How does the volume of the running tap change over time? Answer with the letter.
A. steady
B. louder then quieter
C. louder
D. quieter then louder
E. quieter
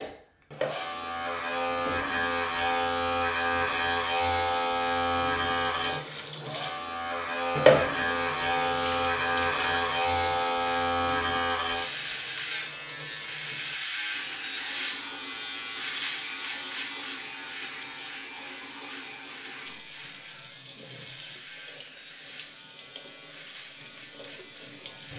B.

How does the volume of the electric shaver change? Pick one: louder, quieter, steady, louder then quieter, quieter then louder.
quieter.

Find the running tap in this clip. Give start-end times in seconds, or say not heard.
0.1-25.1.